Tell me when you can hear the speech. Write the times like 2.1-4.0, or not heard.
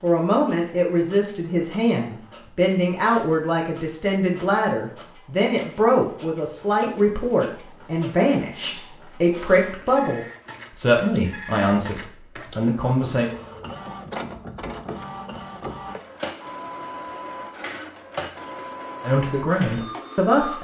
0.0-13.3, 19.0-20.5.